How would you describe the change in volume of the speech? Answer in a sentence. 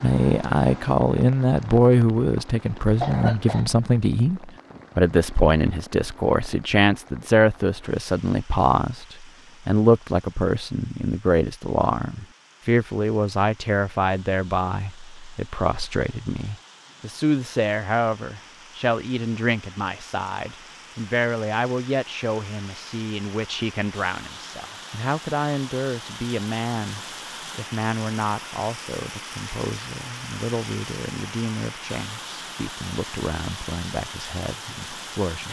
The volume of the speech goes down.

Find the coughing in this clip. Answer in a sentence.
You can hear the coughing from 3.0 to 3.8 s.